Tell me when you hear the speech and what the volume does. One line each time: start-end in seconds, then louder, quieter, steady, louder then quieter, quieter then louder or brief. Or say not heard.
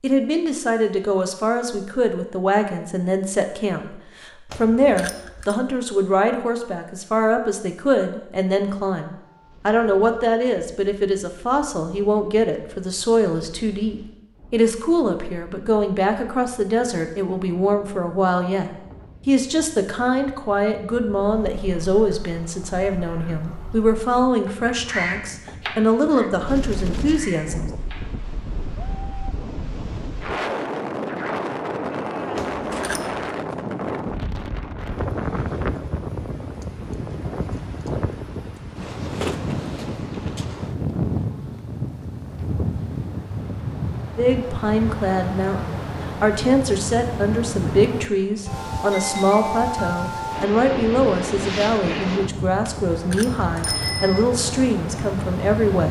0.0-27.7 steady
44.1-55.8 steady.